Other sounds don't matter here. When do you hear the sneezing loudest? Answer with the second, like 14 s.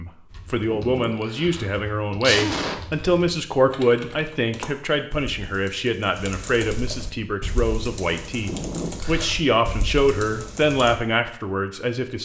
2 s.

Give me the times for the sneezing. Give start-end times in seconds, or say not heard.
0.7-3.1, 8.4-9.3.